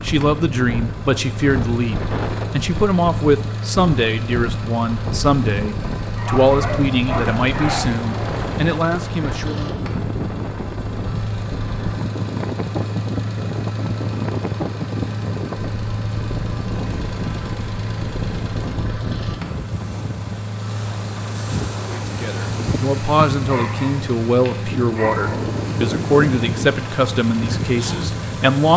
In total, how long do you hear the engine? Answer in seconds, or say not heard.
29 s.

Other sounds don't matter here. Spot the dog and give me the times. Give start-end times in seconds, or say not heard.
6.0-7.8, 23.4-25.4.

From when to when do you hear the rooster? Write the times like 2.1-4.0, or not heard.
not heard.